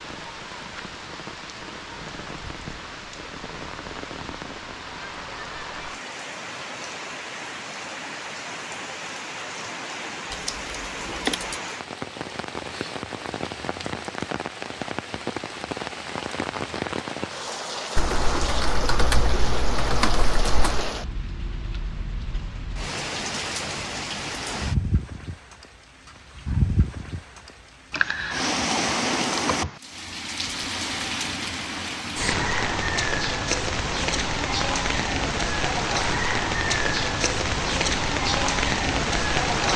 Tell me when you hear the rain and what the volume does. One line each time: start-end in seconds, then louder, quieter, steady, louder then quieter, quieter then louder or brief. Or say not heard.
0.0-39.7 louder.